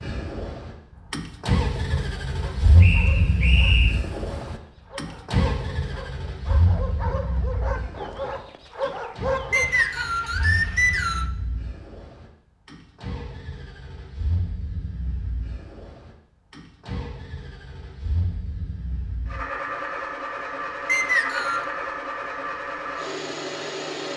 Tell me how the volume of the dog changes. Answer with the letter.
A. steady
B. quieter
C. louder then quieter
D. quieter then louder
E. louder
E.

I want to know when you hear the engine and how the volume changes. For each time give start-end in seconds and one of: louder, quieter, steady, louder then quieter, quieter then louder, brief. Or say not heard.
0.0-24.1 quieter then louder.